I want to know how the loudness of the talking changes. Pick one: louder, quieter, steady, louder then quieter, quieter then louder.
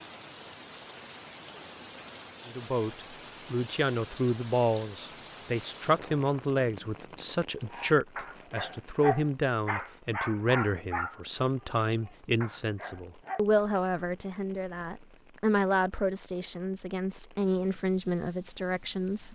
steady.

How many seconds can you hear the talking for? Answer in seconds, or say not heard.
17 s.